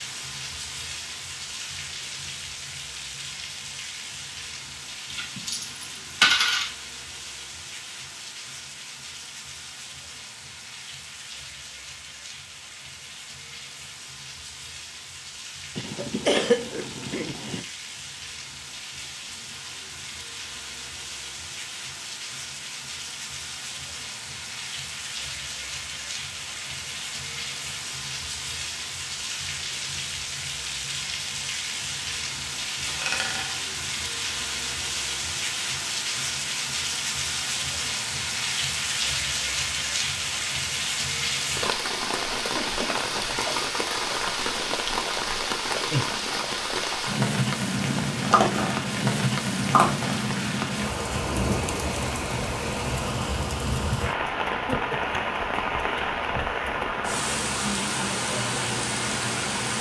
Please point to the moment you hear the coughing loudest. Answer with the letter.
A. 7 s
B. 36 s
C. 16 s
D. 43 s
C.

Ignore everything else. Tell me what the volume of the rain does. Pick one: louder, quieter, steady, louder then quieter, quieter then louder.
louder.